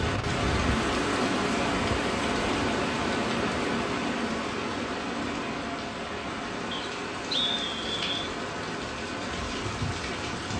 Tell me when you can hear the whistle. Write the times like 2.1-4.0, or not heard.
6.7-8.2.